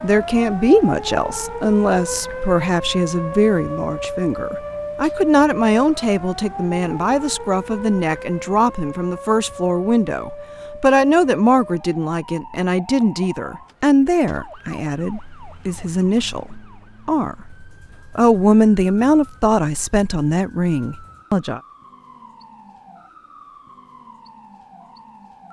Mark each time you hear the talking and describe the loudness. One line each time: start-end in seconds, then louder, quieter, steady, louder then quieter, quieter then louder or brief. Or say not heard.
0.0-21.6 steady.